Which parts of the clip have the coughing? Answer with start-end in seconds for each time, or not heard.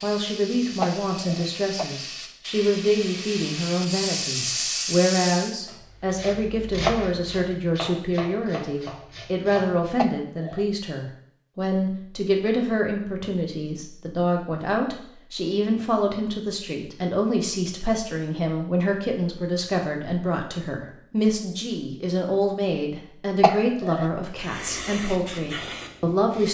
0.8-1.9, 9.9-10.7, 23.4-24.1.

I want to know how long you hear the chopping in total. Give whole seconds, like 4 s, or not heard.
4 s.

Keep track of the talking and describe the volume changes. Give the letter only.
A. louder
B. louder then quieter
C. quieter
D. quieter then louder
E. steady
E.